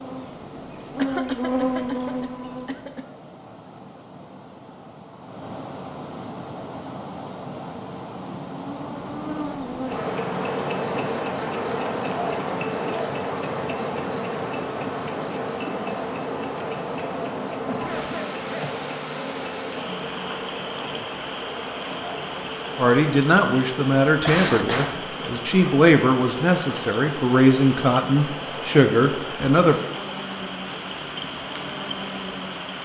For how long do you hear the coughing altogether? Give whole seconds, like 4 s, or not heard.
4 s.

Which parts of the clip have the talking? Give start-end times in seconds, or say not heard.
22.8-29.8.